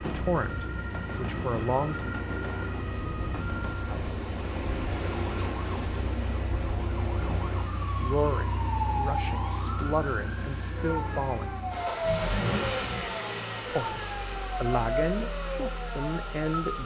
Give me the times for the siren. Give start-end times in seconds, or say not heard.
0.0-16.8.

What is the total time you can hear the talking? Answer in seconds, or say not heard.
9 s.